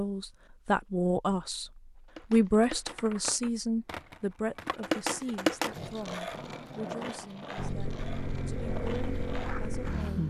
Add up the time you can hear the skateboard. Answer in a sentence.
The skateboard can be heard for 8 seconds in total.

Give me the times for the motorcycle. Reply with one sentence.
You can hear the motorcycle from 7.5 to 10.2 s.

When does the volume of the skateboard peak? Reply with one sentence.
The volume of the skateboard peaks at 5 seconds.